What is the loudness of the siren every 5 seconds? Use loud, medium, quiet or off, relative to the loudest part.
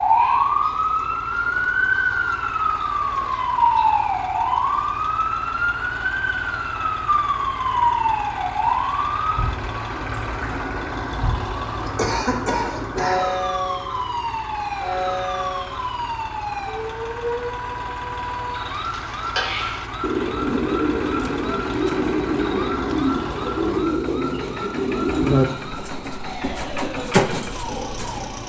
loud, loud, medium, medium, quiet, quiet.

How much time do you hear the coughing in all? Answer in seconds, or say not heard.
2 s.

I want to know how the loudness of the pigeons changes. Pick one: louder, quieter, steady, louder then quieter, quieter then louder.
steady.